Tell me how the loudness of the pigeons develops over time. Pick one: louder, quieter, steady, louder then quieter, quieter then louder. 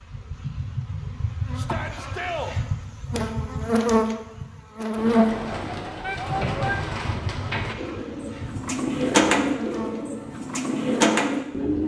louder.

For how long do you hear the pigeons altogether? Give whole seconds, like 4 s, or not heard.
7 s.